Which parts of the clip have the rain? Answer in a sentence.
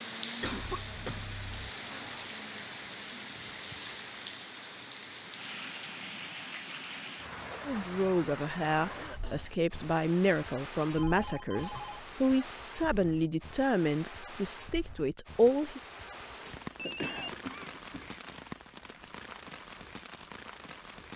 The rain can be heard from 0.0 to 21.1 s.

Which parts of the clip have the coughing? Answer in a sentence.
The coughing can be heard from 0.4 to 2.2 s, from 8.8 to 9.5 s and from 16.2 to 18.2 s.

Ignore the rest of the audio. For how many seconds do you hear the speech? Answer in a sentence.
The speech can be heard for 8 seconds in total.